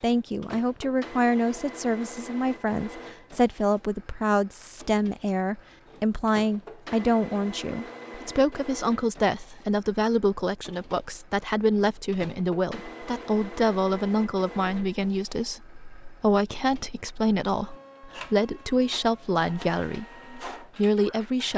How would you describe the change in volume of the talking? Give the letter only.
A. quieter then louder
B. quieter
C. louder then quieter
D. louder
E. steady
E.